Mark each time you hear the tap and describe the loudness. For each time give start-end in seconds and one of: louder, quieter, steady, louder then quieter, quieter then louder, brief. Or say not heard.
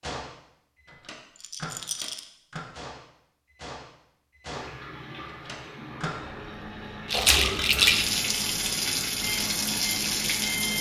4.5-10.7 louder.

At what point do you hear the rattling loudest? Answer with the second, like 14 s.
8 s.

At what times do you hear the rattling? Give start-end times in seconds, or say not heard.
1.4-2.2, 7.0-8.2.